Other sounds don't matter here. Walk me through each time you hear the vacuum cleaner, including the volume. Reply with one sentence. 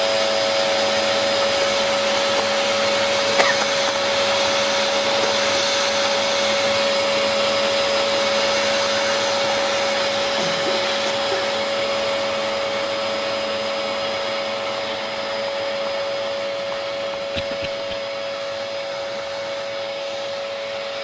You can hear the vacuum cleaner from 0.0 to 20.9 s, getting quieter.